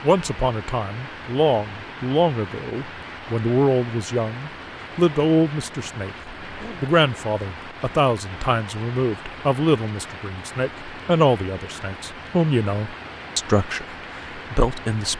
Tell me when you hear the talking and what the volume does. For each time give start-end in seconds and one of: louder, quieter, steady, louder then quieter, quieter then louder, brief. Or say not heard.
0.0-15.1 steady.